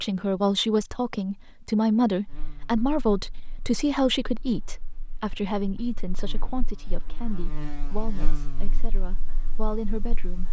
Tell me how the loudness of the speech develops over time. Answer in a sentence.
The volume of the speech goes down.